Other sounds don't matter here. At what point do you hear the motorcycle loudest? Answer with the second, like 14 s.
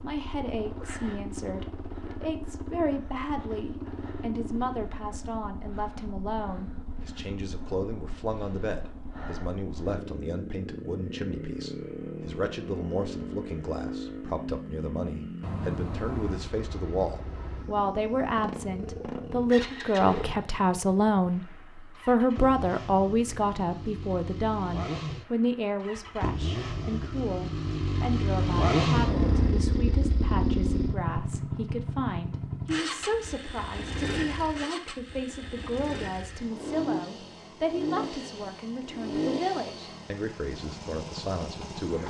29 s.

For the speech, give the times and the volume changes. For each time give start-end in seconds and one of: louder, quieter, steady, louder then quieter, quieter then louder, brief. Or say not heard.
0.0-42.0 louder then quieter.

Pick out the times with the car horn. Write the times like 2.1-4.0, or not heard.
15.4-16.4, 28.4-29.6.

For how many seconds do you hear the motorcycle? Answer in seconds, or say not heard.
42 s.